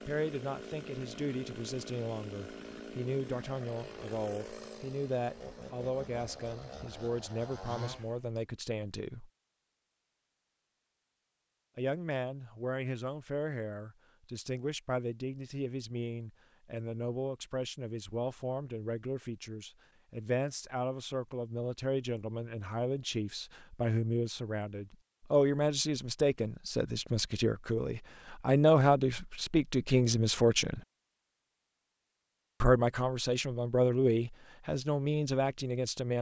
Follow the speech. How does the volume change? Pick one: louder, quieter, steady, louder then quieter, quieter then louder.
louder.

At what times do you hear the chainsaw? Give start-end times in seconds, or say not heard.
0.0-8.4.